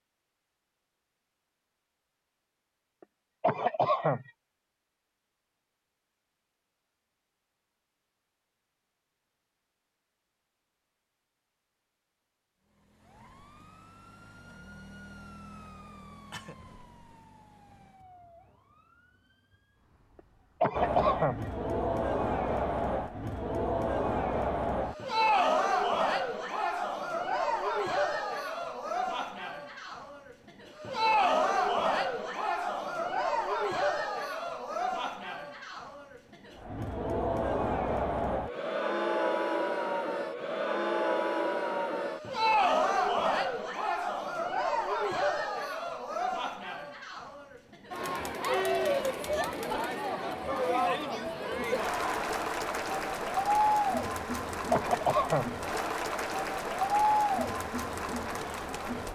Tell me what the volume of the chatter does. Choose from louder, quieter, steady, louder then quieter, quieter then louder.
steady.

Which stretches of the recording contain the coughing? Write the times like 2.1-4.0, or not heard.
3.4-4.3, 20.6-21.4, 54.7-55.6.